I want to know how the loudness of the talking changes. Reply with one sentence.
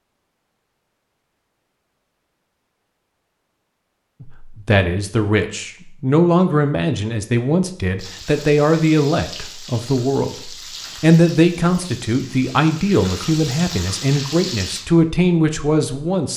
The volume of the talking stays about the same.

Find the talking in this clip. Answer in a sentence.
You can hear the talking from 4.2 to 16.3 s.